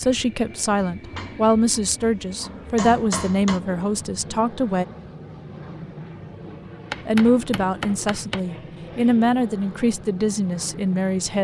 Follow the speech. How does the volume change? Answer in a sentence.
The volume of the speech stays about the same.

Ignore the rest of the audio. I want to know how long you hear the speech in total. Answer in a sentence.
The speech can be heard for 9 seconds in total.